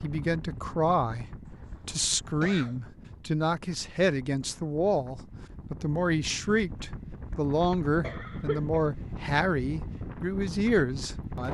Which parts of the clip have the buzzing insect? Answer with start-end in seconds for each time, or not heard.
not heard.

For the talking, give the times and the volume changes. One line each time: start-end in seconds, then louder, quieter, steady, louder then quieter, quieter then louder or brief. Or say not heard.
0.0-11.4 steady.